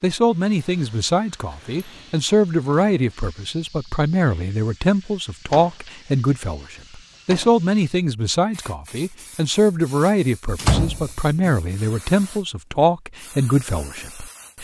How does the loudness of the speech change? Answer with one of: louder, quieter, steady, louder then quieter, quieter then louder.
steady.